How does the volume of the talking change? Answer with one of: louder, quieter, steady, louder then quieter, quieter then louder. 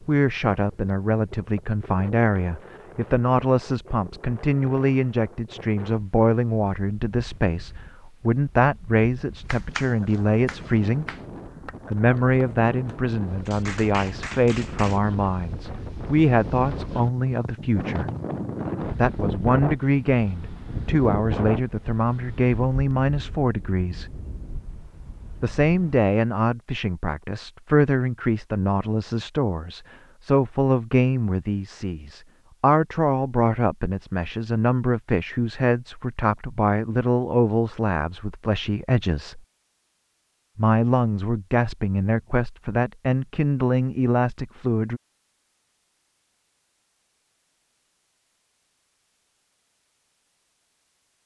steady.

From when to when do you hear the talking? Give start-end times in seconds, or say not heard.
0.0-11.1, 11.9-18.1, 18.9-24.1, 25.4-39.4, 40.5-45.0.